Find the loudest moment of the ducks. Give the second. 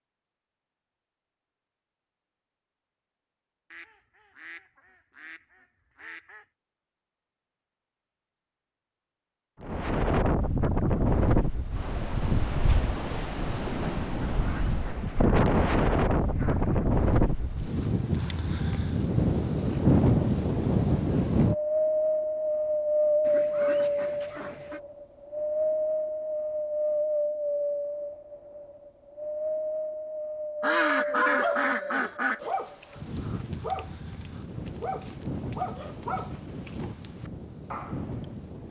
31 s.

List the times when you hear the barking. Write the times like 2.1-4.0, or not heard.
31.1-38.2.